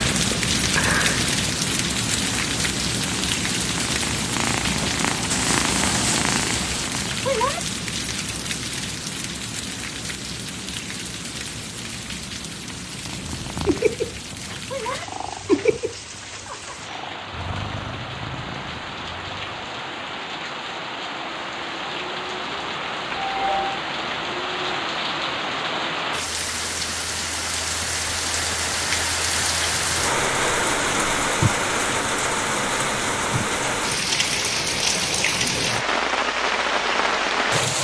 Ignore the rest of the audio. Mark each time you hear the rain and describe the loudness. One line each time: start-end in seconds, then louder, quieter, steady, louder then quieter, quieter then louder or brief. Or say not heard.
0.0-37.7 quieter then louder.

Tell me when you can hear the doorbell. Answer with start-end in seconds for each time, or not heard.
23.1-23.8.